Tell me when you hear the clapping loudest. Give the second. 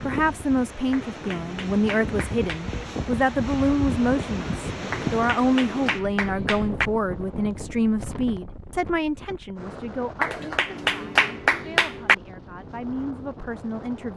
11 s.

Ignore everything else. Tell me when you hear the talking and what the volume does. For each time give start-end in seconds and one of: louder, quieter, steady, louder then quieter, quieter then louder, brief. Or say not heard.
0.0-14.1 quieter.